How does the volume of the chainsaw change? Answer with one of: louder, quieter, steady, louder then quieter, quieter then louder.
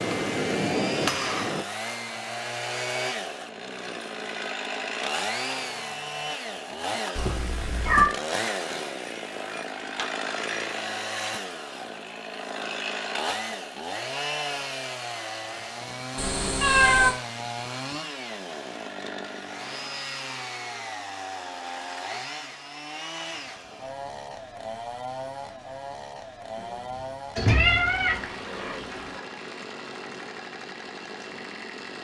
quieter.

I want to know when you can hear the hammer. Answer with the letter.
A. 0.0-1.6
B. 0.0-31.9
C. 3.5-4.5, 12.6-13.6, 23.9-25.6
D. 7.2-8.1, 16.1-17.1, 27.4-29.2
A.